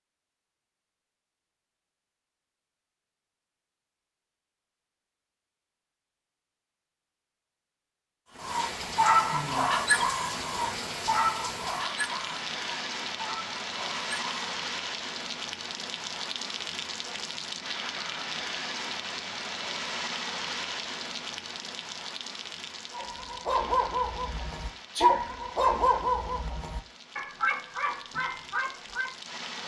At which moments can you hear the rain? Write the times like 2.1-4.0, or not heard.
8.3-29.6.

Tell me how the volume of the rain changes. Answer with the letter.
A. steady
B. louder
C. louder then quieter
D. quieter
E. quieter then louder
D.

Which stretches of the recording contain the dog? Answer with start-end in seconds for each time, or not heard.
8.3-14.6, 22.9-29.1.